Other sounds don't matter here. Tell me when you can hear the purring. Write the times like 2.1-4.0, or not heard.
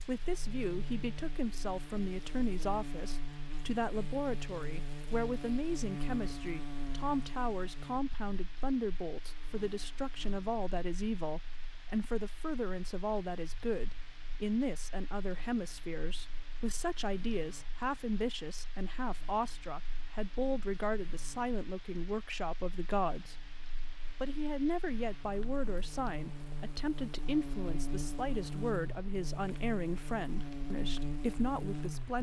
not heard.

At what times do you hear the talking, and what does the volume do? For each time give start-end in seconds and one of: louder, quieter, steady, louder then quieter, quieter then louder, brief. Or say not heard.
0.0-23.4 steady
24.1-32.1 steady.